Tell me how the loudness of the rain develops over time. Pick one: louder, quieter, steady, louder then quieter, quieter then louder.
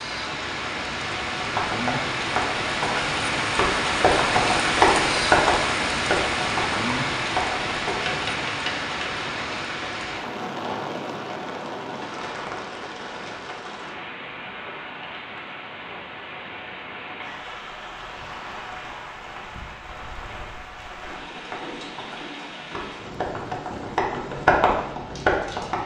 quieter.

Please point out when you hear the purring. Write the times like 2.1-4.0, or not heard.
not heard.